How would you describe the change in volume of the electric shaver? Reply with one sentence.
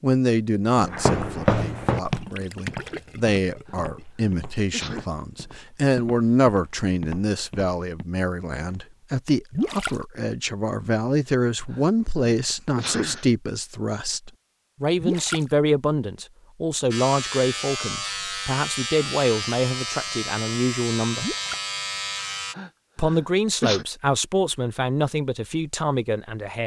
The volume of the electric shaver stays about the same.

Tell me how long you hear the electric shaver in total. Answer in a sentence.
The electric shaver can be heard for 6 seconds in total.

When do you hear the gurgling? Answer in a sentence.
You can hear the gurgling from 2.1 to 4.0 s, from 9.5 to 9.9 s, from 15.0 to 15.4 s and from 21.1 to 21.6 s.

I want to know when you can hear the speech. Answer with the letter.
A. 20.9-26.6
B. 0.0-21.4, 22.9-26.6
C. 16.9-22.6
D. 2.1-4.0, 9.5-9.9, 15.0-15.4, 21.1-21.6
B.